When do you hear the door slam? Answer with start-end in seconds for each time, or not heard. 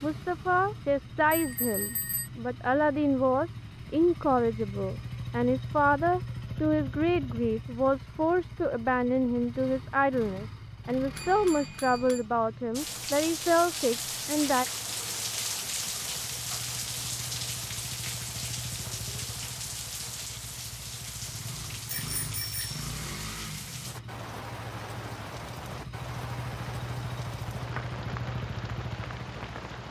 not heard.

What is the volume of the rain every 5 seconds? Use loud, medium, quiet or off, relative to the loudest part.
off, off, loud, loud, medium, medium.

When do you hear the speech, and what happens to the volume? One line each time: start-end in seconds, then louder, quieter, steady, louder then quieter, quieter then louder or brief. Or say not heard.
0.0-14.7 steady.